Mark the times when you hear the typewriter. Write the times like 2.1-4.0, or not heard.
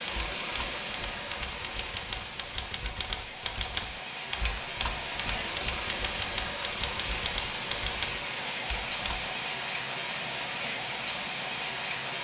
0.0-9.2.